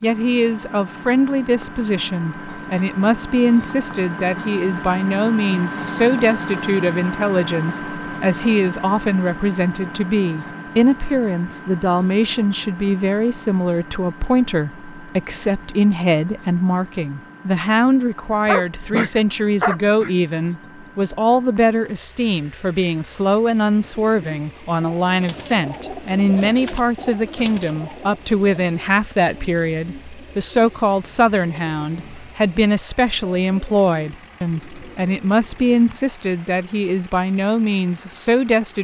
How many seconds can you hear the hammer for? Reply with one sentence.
The hammer can't be heard in this clip.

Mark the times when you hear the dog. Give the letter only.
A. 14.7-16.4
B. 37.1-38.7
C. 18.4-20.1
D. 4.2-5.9
C.